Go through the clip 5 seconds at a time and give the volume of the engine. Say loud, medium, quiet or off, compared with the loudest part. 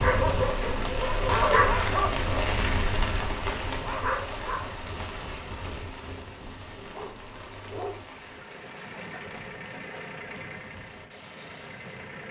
off, loud, loud.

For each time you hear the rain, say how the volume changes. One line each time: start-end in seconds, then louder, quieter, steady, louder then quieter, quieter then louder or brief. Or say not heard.
0.0-12.2 quieter.